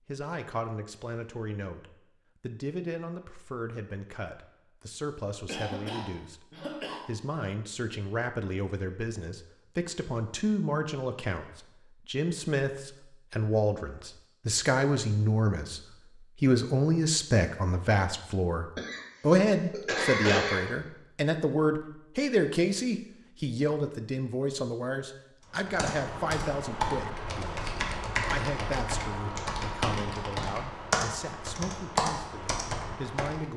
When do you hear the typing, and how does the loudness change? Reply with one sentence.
The typing can be heard from 25.6 to 33.5 s, at a steady volume.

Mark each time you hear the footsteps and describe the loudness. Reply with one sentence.
The footsteps can't be heard in this clip.